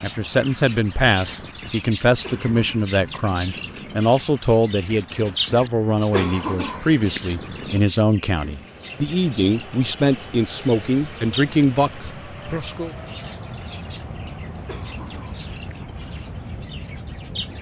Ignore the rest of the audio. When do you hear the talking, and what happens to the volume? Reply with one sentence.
You can hear the talking from 0.0 to 12.9 s, at a steady volume.